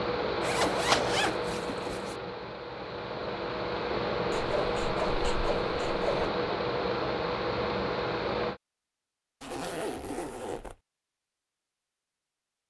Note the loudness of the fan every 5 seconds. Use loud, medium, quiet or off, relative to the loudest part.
loud, loud, off.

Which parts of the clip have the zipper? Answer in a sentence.
The zipper can be heard from 0.4 to 2.1 s, from 4.3 to 6.3 s and from 9.4 to 10.8 s.